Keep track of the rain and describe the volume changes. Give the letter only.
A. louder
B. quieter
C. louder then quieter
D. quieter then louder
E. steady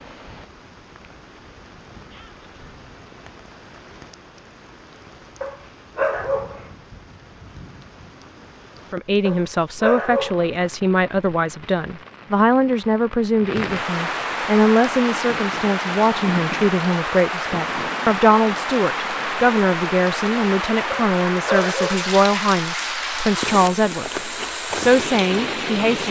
A.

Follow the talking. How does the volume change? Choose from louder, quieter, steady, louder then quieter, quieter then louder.
steady.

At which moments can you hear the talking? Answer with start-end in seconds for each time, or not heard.
8.9-26.0.